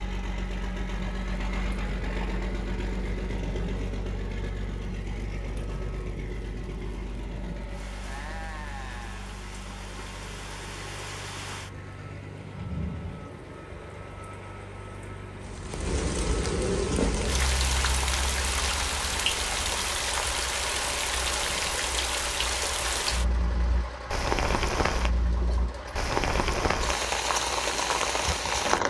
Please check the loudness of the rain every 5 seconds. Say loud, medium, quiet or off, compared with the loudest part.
quiet, quiet, quiet, loud, loud, loud.